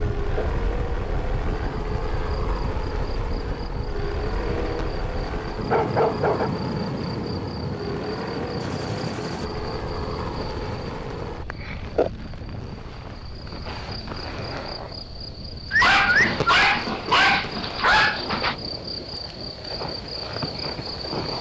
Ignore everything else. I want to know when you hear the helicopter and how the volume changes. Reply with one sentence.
You can hear the helicopter from 0.0 to 11.4 s, at a steady volume.